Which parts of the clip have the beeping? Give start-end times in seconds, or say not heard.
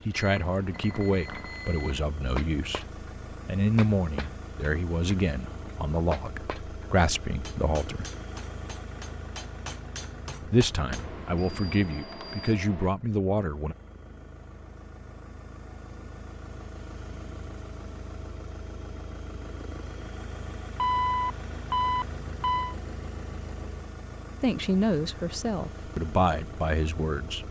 0.1-2.0, 10.9-12.9, 20.8-22.8.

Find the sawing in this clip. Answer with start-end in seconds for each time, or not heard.
not heard.